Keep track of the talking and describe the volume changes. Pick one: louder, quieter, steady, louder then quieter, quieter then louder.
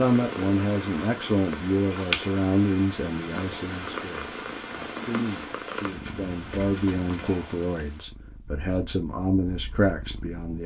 quieter then louder.